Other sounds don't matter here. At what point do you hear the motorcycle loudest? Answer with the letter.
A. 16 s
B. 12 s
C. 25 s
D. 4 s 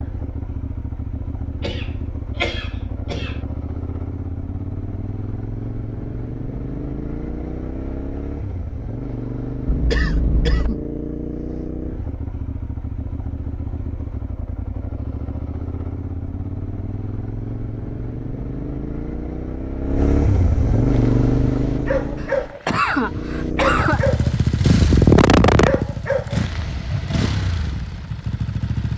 C.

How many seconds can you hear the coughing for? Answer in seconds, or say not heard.
5 s.